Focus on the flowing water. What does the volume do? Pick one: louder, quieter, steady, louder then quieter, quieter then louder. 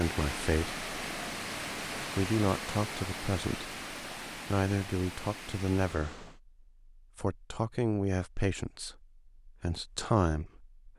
quieter.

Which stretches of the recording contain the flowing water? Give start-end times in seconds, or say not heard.
0.0-6.4.